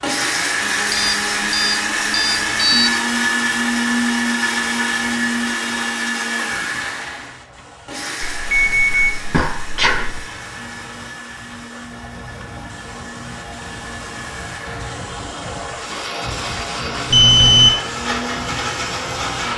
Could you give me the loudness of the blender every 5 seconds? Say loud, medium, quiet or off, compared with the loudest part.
loud, medium, quiet, medium.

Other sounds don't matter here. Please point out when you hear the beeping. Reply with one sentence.
The beeping can be heard from 0.9 to 2.9 s, from 8.2 to 10.2 s and from 17.1 to 17.7 s.